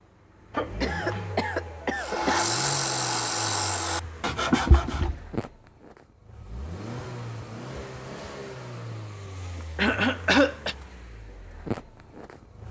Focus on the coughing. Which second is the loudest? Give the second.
10 s.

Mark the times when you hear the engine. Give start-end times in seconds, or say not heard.
0.0-12.6.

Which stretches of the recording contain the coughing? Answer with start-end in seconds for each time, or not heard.
0.5-2.5, 4.2-5.2, 9.8-10.8.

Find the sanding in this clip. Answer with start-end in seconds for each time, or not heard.
1.9-5.0.